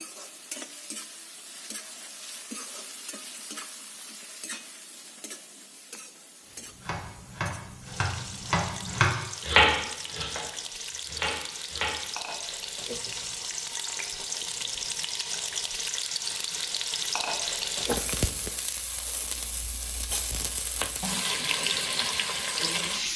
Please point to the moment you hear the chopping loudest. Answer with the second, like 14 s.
10 s.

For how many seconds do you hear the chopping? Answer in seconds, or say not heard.
5 s.